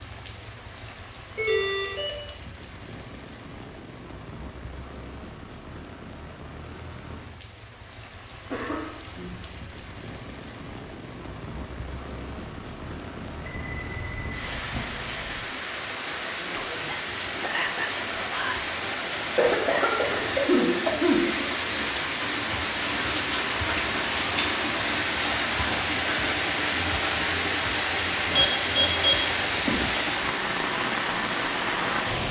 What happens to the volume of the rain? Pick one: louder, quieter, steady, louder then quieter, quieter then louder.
louder.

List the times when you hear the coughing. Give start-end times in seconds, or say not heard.
8.4-9.4, 19.4-21.2.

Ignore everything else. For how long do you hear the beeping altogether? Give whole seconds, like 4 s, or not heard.
4 s.